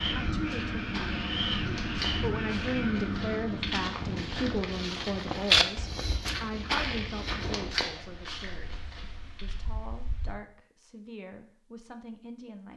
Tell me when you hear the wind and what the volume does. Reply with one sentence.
The wind can be heard from 0.0 to 10.3 s, getting quieter.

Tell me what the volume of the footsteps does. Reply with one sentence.
The loudness of the footsteps goes up, then down.